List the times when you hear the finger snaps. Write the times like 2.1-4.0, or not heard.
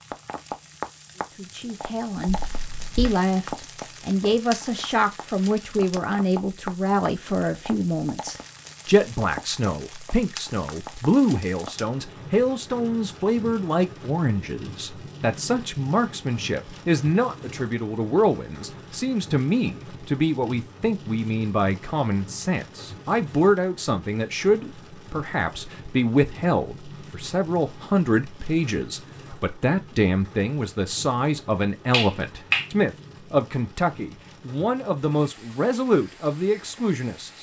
2.2-3.2, 31.9-32.6.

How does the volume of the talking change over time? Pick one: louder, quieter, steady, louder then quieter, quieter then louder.
steady.